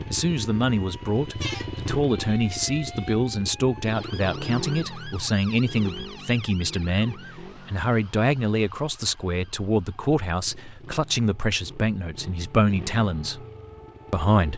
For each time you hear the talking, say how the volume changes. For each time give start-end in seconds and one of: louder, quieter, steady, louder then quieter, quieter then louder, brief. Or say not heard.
0.0-13.4 steady
14.1-14.5 brief.